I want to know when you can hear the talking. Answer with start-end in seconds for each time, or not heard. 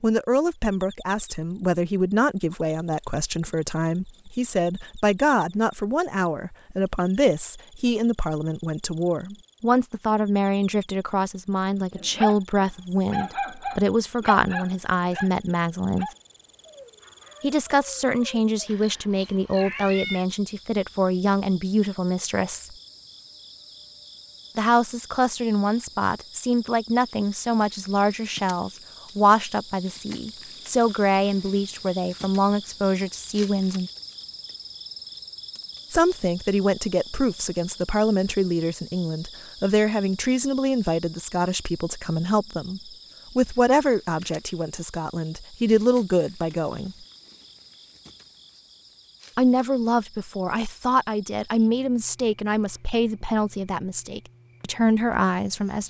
0.0-16.1, 17.4-22.8, 24.6-33.9, 35.9-47.0, 49.4-55.8.